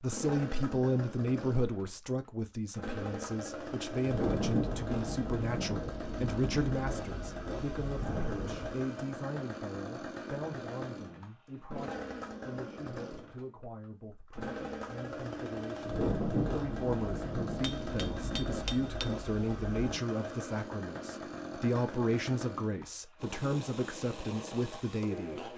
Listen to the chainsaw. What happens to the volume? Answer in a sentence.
The volume of the chainsaw stays about the same.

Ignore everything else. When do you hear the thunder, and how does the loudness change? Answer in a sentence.
The thunder can be heard from 4.0 to 8.8 s, getting quieter then louder; and from 15.8 to 20.0 s, getting quieter.